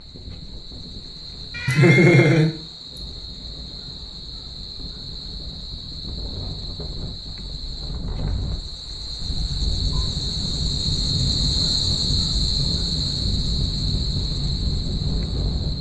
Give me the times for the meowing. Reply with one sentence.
You can hear the meowing from 1.5 to 2.5 s.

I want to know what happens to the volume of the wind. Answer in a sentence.
The volume of the wind goes up.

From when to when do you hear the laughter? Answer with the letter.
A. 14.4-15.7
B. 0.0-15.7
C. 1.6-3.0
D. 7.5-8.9
C.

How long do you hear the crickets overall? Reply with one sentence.
You can hear the crickets for 16 seconds altogether.